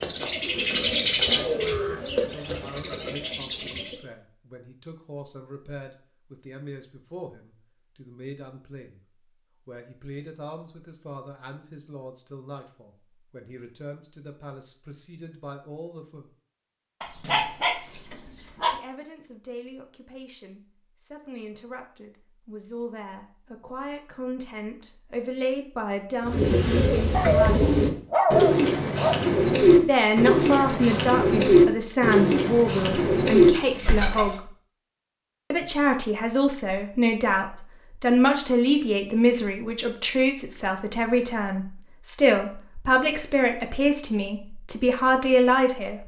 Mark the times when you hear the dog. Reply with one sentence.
You can hear the dog from 17.0 to 18.8 s and from 27.1 to 29.1 s.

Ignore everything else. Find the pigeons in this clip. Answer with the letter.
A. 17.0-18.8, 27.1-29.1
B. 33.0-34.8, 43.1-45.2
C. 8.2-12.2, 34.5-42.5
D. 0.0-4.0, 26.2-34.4
D.